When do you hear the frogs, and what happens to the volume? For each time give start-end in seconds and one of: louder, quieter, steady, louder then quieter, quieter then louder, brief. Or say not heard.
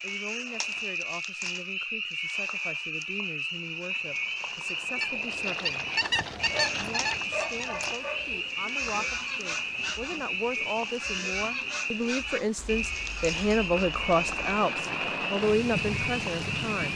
0.0-16.9 steady.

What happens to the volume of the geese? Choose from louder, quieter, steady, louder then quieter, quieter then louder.
quieter.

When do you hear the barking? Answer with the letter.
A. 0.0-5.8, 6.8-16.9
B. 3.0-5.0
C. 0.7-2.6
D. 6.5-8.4
D.